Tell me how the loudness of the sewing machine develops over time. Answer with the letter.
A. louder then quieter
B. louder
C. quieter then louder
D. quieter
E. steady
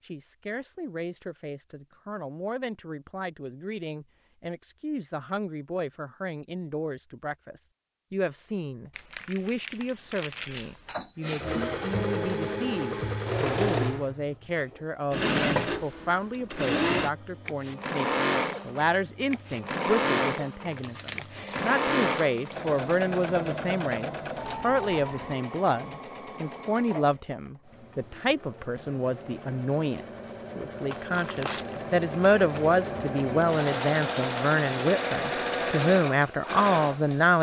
C.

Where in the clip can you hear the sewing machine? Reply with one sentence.
You can hear the sewing machine from 10.8 to 37.3 s.